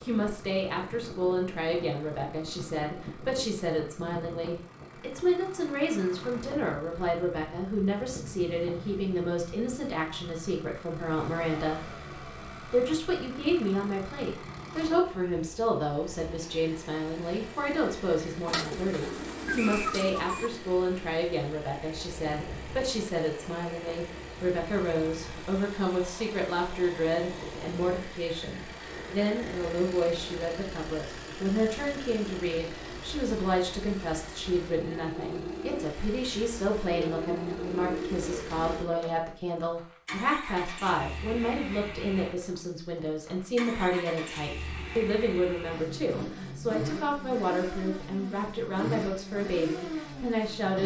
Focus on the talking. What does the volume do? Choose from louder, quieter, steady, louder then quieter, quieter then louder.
steady.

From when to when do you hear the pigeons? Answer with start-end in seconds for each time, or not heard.
18.4-20.5, 36.9-39.1.